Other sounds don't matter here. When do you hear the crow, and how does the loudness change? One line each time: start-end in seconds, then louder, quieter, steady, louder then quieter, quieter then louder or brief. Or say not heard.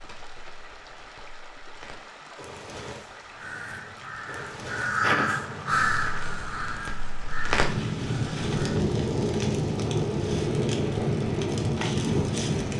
3.3-8.8 louder then quieter.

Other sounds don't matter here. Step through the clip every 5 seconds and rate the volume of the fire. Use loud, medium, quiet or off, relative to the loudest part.
quiet, loud, loud.